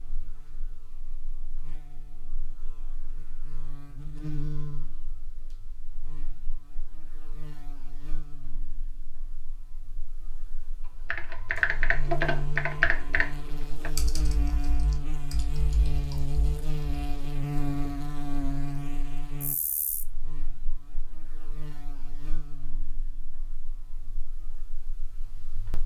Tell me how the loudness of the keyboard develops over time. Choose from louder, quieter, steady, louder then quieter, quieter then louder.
quieter.